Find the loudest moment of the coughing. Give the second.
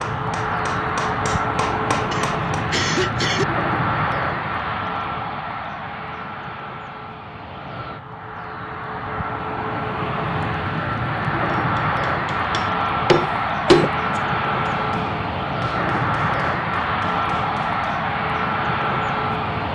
3 s.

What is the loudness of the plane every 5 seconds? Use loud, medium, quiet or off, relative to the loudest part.
loud, medium, loud, loud.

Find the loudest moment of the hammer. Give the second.
14 s.